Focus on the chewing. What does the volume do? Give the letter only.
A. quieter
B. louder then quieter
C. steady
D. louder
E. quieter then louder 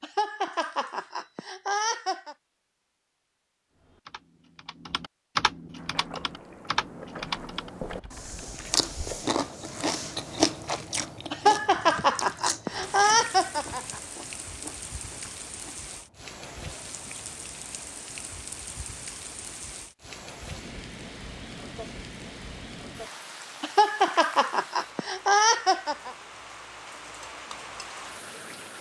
B.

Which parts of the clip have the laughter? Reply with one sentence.
The laughter can be heard from 0.0 to 2.4 s, from 11.3 to 14.0 s and from 23.6 to 26.1 s.